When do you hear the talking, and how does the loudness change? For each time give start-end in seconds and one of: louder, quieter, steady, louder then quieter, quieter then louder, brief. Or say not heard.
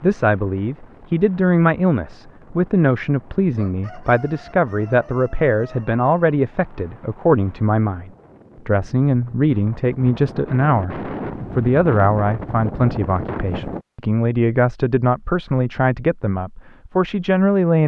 0.0-17.8 steady.